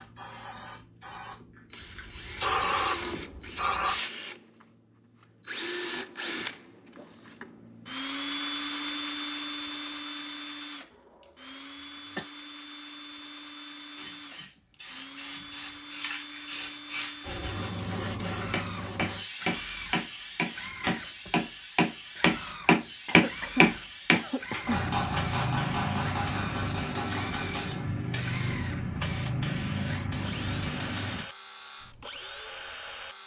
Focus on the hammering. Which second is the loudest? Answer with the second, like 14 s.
23 s.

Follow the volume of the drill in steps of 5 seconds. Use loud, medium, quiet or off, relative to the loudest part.
medium, loud, medium, medium, medium, medium, medium.